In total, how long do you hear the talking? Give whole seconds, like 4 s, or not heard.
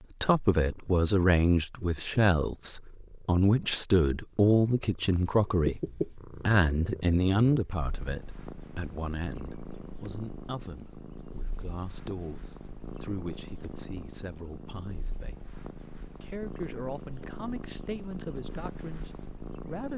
19 s.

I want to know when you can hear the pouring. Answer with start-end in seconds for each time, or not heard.
not heard.